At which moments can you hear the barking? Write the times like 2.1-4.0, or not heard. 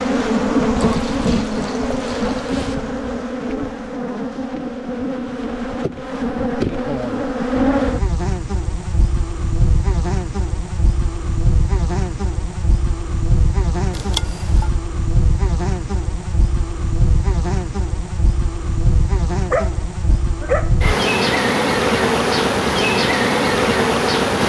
19.5-20.7.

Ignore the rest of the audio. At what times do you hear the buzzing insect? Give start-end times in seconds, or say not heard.
0.0-24.4.